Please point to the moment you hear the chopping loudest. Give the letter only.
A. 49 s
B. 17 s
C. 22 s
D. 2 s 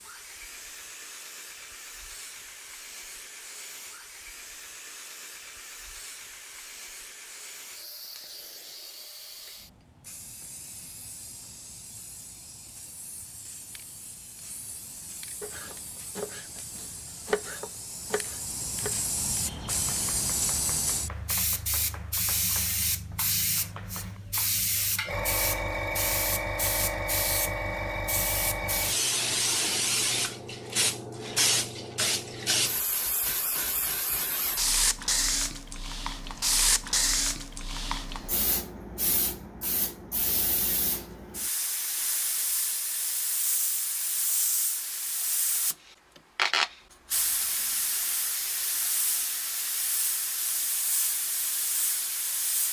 B.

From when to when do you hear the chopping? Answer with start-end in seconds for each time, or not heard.
15.4-24.2.